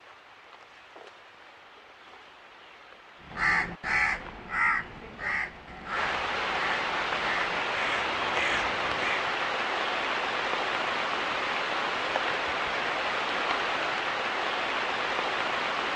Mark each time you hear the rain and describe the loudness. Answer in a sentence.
The rain can be heard from 0.0 to 15.9 s, getting louder.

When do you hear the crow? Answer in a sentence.
The crow can be heard from 3.2 to 9.2 s.